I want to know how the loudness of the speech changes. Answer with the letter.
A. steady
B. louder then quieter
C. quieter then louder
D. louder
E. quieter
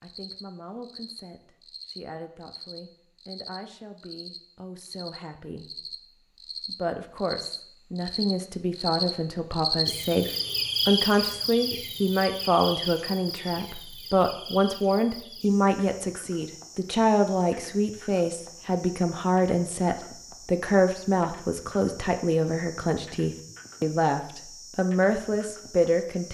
D.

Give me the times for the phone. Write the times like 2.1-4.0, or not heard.
not heard.